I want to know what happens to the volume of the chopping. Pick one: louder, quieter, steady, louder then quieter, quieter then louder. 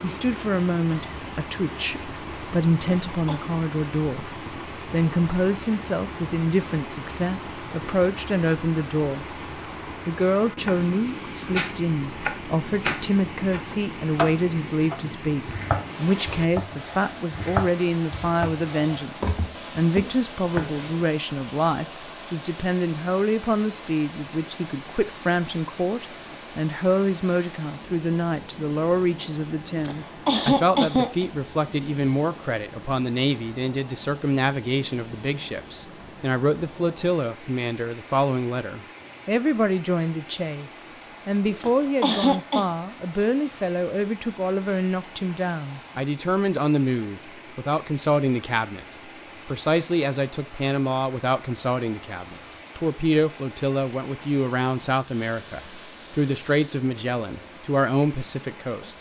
steady.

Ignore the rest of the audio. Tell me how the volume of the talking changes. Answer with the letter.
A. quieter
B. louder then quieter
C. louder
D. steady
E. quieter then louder
D.